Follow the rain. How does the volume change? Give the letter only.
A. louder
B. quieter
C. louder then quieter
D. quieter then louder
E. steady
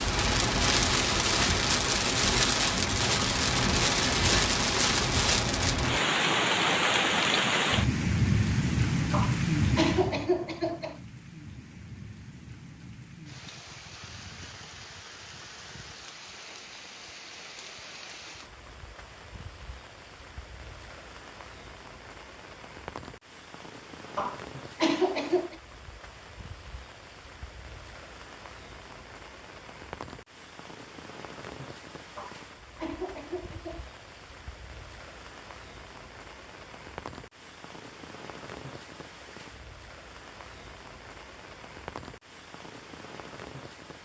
B.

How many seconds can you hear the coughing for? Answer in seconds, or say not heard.
5 s.